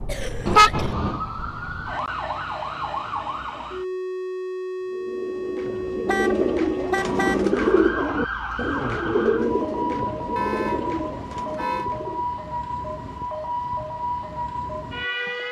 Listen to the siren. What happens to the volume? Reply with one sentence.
The volume of the siren stays about the same.